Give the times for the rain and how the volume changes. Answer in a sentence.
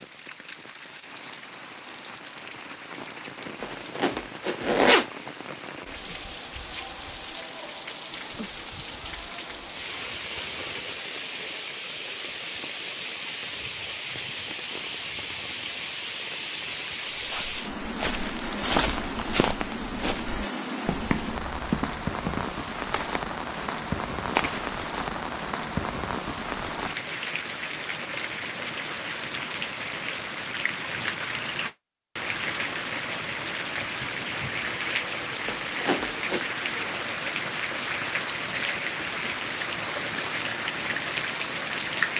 You can hear the rain from 0.0 to 42.1 s, getting louder.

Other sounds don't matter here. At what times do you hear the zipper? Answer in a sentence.
You can hear the zipper from 3.6 to 5.0 s and from 35.5 to 36.5 s.